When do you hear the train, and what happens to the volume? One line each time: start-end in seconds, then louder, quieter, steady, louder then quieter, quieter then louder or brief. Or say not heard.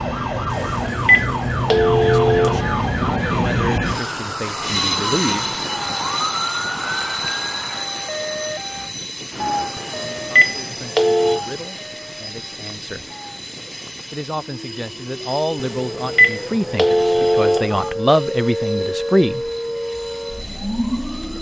0.0-21.3 quieter.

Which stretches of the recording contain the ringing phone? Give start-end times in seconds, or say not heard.
0.5-2.9, 9.8-11.4, 15.6-17.9.